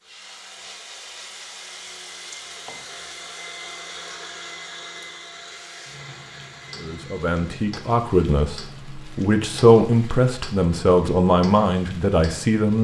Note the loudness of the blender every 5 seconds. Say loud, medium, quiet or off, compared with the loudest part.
loud, loud, off.